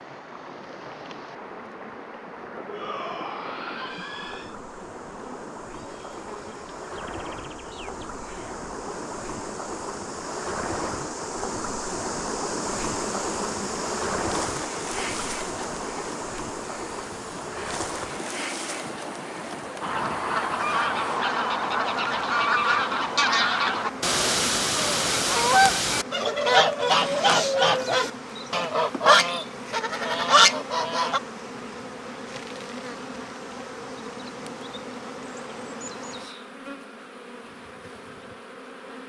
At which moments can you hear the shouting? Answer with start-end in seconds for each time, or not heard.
2.6-4.5.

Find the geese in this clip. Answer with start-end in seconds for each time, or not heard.
19.8-31.2.